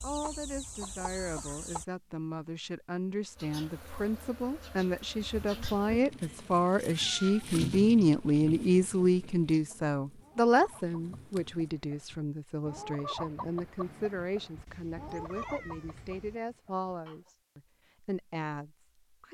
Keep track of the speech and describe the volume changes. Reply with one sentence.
The volume of the speech goes up, then down.